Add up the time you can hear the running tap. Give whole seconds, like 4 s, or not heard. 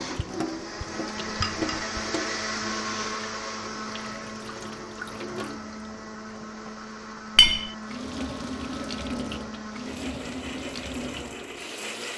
12 s.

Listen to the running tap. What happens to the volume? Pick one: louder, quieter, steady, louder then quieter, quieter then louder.
quieter then louder.